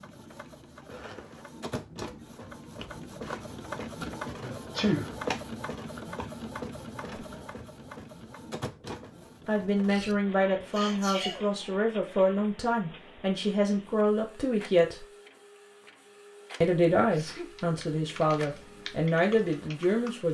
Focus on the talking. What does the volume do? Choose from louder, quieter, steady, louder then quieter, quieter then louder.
steady.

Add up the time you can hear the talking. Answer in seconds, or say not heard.
9 s.